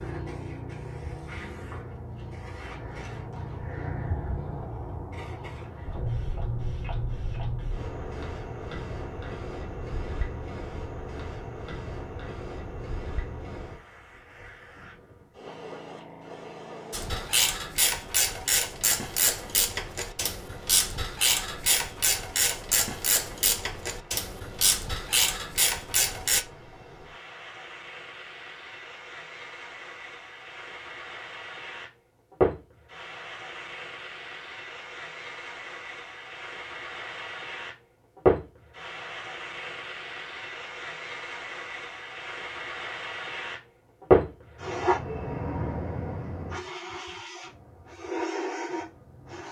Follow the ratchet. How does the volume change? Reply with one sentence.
The volume of the ratchet stays about the same.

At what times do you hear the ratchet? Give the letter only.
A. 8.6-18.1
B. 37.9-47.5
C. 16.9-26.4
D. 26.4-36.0
C.